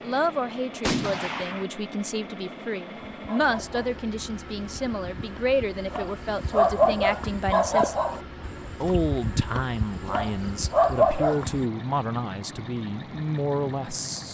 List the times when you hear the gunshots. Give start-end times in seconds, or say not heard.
0.8-1.6.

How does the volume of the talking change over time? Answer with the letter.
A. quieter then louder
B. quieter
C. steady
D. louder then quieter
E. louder
C.